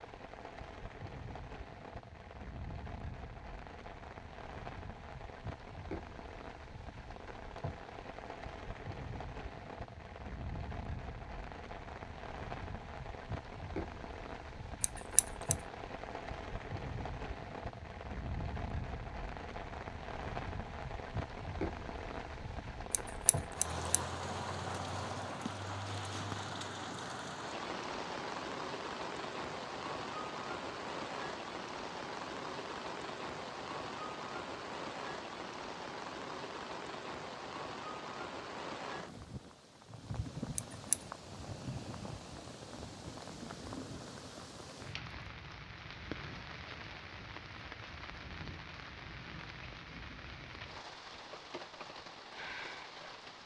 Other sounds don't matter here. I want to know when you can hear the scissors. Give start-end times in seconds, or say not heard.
14.8-15.6, 22.9-24.0, 40.5-41.0.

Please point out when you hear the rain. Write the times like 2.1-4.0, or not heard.
0.0-53.4.